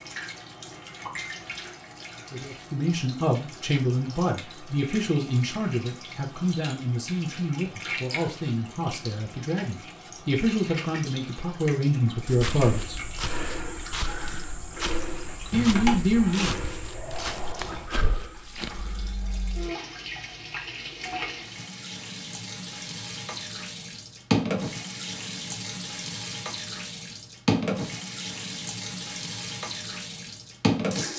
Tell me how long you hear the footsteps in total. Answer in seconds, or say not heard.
7 s.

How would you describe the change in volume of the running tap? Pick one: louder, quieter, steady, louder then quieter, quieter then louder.
louder.